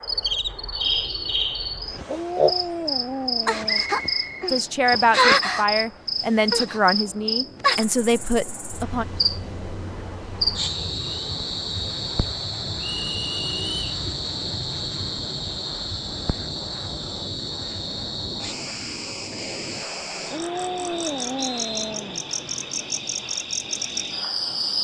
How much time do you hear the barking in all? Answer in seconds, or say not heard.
4 s.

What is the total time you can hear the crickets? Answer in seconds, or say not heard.
25 s.